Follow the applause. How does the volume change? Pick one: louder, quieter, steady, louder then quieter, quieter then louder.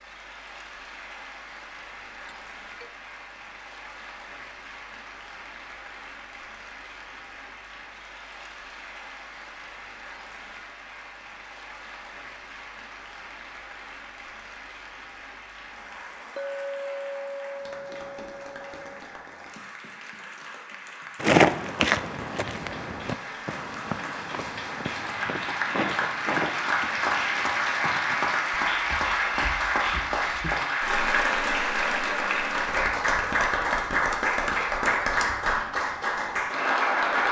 louder.